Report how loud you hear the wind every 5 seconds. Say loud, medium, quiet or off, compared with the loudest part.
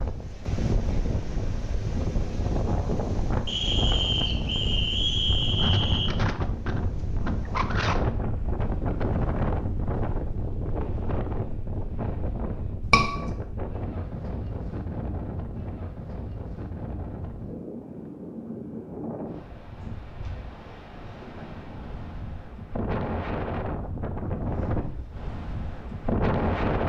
loud, loud, medium, medium, medium, loud.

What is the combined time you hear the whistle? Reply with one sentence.
The whistle can be heard for 3 seconds in total.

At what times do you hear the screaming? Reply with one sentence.
The screaming can be heard from 12.8 to 13.3 s.